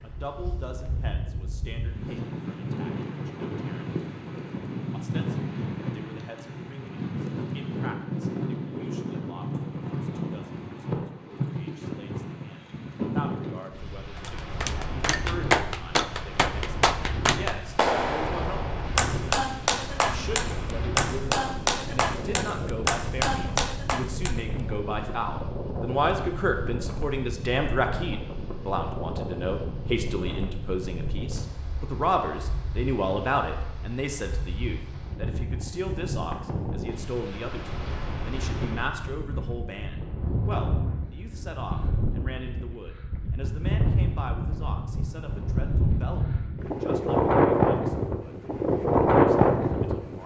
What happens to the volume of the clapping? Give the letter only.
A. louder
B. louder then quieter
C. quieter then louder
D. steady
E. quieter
D.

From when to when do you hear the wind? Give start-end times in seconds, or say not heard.
0.0-50.2.